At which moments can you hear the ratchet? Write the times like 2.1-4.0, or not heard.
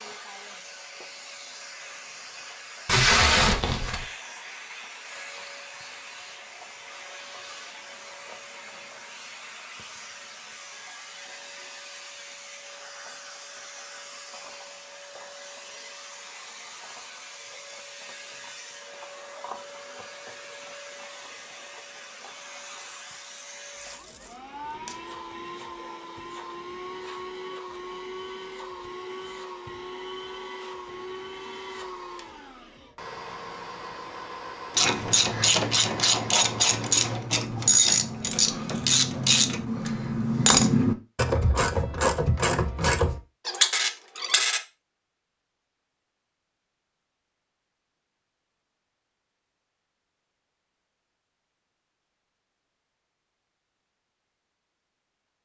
34.8-44.6.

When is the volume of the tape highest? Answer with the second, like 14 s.
3 s.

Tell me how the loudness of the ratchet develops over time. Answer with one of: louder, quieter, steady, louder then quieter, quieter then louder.
steady.